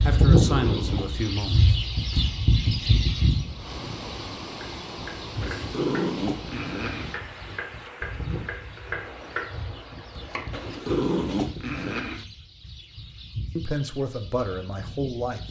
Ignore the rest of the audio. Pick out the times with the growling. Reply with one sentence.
The growling can be heard from 0.2 to 1.4 s, from 5.4 to 7.2 s and from 10.5 to 12.2 s.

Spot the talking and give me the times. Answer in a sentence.
The talking can be heard from 0.0 to 1.8 s and from 13.6 to 15.4 s.